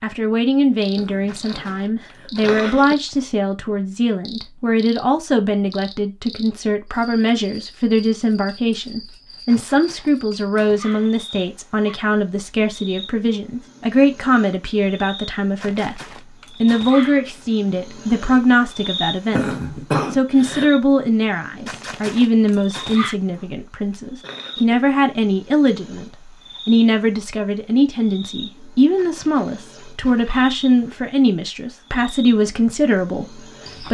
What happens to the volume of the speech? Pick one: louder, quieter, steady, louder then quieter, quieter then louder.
steady.